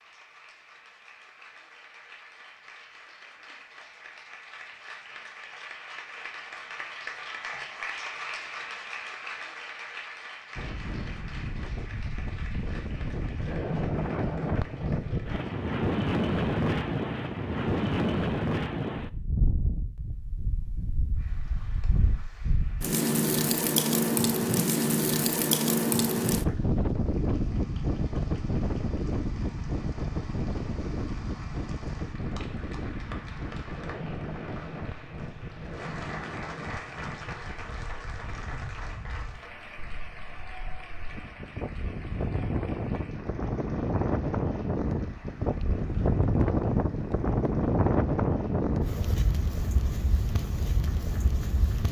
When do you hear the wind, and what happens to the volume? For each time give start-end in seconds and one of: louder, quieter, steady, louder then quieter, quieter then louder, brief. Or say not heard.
10.6-51.8 quieter then louder.